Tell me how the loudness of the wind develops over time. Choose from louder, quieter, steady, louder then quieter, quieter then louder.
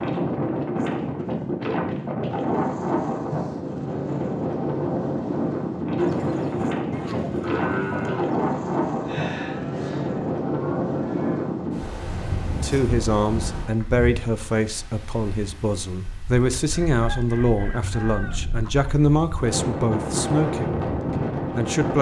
quieter then louder.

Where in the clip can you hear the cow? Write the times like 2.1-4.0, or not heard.
6.0-11.4.